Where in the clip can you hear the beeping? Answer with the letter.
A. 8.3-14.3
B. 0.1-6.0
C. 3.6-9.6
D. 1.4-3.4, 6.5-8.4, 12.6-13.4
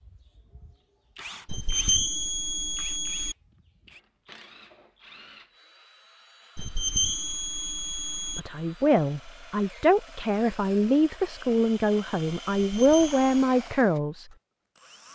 D.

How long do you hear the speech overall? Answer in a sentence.
You can hear the speech for 6 seconds altogether.